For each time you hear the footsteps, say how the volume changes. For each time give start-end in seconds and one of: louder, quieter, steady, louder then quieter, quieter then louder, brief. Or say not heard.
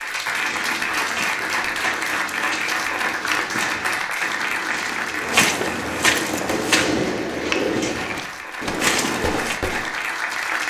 0.2-9.6 louder.